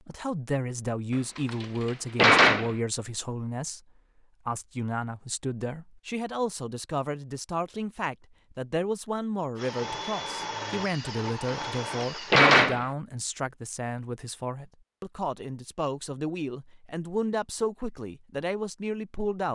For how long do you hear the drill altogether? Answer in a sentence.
You can hear the drill for 3 seconds altogether.